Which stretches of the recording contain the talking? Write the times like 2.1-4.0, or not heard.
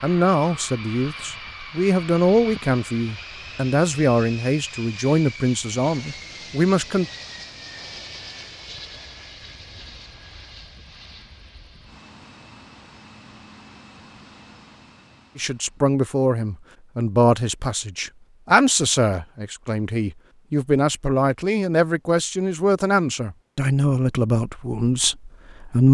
0.0-7.0, 15.3-25.8.